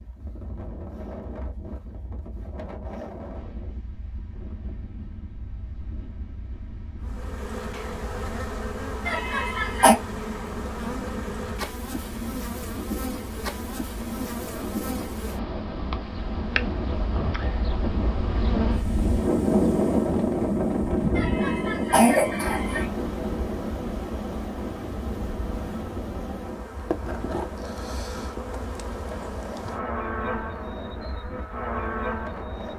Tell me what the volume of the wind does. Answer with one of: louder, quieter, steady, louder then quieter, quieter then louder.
louder then quieter.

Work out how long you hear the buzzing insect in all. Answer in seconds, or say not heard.
26 s.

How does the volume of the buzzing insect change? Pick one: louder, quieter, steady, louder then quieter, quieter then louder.
steady.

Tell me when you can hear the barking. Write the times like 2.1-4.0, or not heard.
not heard.